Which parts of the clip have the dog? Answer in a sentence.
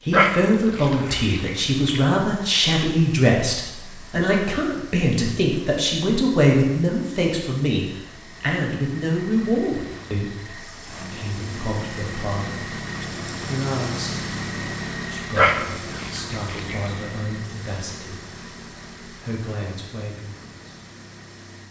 The dog can be heard from 0.1 to 2.0 s and from 15.3 to 16.9 s.